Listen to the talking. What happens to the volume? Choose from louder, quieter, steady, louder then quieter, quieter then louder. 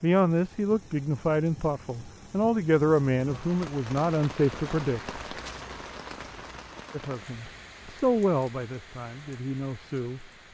quieter.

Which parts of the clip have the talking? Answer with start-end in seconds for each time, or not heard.
0.0-5.2, 6.9-10.3.